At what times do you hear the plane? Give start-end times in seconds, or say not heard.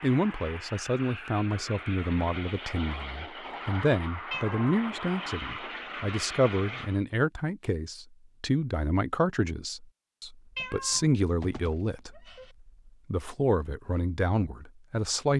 0.0-7.0.